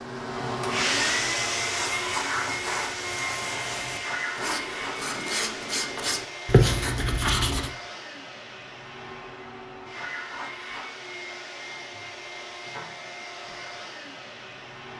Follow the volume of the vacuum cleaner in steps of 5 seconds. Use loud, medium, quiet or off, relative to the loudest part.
loud, medium, medium.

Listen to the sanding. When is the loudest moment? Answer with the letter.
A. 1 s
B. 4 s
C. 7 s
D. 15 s
C.